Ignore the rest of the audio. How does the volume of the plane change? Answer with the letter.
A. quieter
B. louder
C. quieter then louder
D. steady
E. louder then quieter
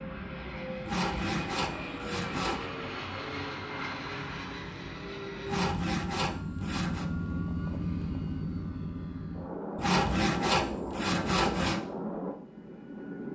D.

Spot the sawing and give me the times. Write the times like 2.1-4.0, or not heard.
0.8-2.7, 5.5-7.0, 9.8-11.8.